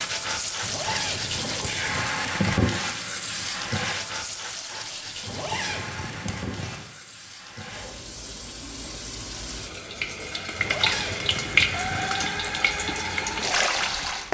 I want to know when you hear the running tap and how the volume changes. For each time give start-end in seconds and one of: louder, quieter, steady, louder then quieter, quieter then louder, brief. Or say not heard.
0.0-14.3 quieter then louder.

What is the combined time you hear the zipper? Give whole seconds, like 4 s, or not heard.
5 s.